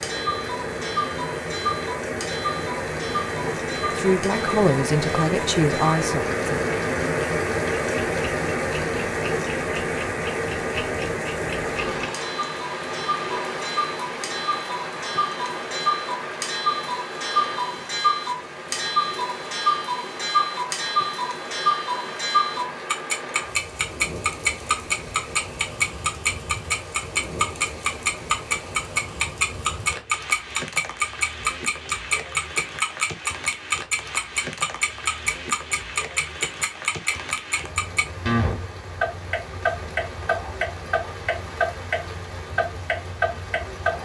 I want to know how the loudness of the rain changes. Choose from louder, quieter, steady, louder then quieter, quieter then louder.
quieter.